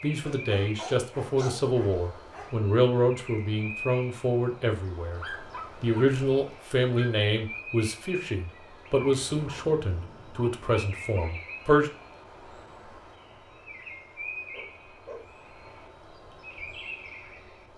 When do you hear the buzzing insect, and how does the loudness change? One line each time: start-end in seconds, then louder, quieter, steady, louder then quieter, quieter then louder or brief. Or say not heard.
not heard.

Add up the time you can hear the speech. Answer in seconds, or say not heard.
12 s.